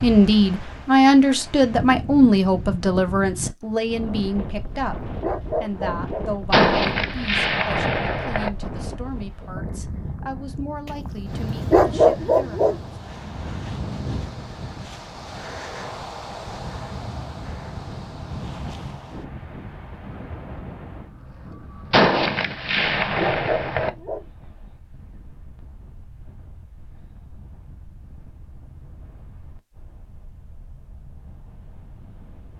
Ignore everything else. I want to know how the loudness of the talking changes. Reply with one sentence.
The loudness of the talking goes down.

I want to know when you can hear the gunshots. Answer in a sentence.
The gunshots can be heard from 6.5 to 8.5 s and from 21.9 to 23.9 s.